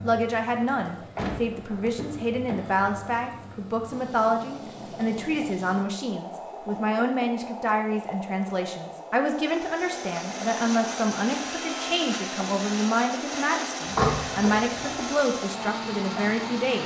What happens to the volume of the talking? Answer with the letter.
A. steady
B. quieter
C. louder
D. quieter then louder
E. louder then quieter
A.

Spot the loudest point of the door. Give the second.
14 s.